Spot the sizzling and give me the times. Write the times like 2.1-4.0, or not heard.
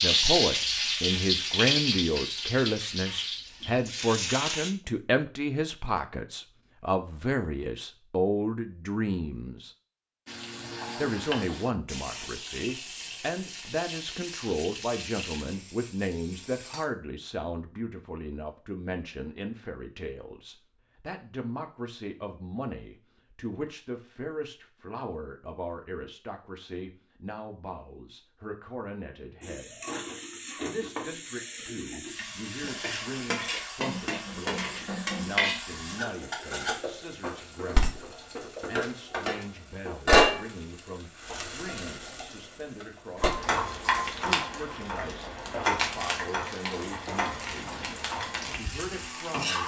0.0-4.7, 10.2-16.9, 29.4-49.6.